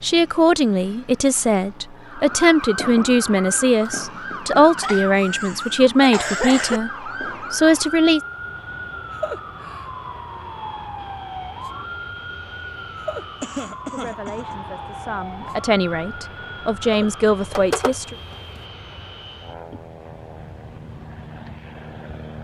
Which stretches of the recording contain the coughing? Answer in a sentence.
The coughing can be heard from 4.8 to 6.8 s and from 13.4 to 14.6 s.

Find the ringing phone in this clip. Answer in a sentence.
The ringing phone can be heard from 17.6 to 18.6 s.